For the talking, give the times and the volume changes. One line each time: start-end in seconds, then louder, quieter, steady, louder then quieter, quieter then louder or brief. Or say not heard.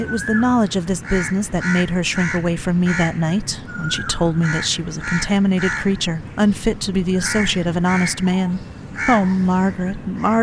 0.0-10.3 steady.